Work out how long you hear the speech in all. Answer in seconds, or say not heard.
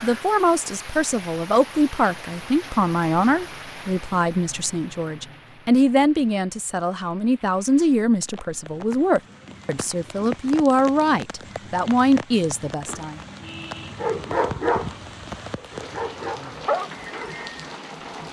13 s.